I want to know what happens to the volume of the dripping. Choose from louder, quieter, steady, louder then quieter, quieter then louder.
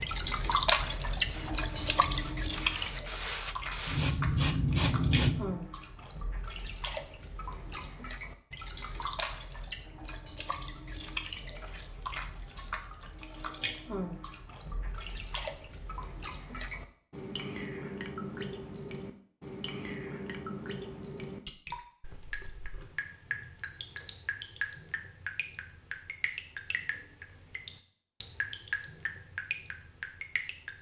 quieter.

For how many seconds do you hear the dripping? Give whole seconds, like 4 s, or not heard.
31 s.